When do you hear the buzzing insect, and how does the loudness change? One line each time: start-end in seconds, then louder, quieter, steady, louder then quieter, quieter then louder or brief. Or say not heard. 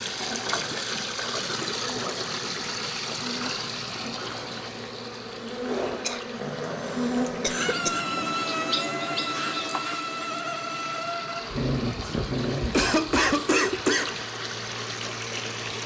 0.2-15.8 louder then quieter.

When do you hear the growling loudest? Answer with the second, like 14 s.
12 s.